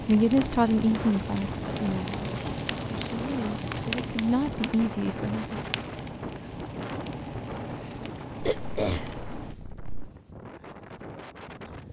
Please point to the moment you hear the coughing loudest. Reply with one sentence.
The volume of the coughing peaks at 9 seconds.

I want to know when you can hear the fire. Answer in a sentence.
You can hear the fire from 0.0 to 9.6 s.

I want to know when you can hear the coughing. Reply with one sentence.
You can hear the coughing from 8.4 to 10.1 s.